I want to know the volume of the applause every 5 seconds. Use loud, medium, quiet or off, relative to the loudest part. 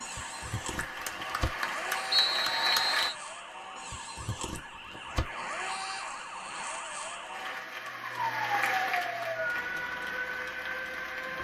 loud, loud, medium.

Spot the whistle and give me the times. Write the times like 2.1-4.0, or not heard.
2.1-3.1.